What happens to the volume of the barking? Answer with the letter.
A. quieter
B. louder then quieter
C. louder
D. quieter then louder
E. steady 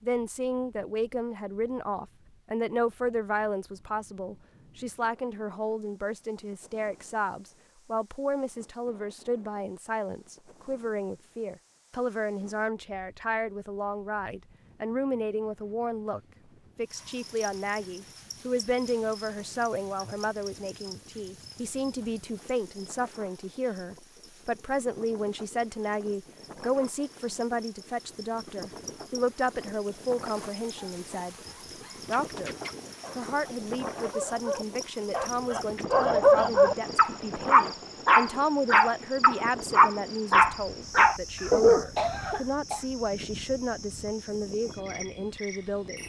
C.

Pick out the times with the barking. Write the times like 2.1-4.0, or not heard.
30.8-41.9.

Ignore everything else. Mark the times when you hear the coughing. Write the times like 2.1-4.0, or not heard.
41.4-42.9.